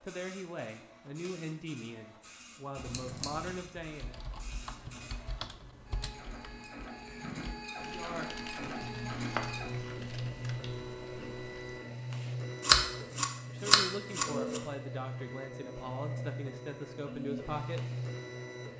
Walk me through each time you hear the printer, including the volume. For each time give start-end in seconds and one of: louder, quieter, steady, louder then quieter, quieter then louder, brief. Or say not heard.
0.0-18.7 louder.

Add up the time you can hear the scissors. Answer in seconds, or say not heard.
5 s.